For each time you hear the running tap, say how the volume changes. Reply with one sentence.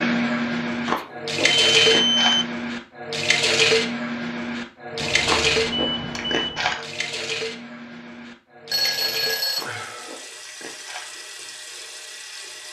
You can hear the running tap from 0.0 to 12.6 s, getting quieter.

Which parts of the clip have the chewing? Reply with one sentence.
The chewing can be heard from 0.7 to 2.5 s, from 5.1 to 6.8 s and from 9.2 to 11.2 s.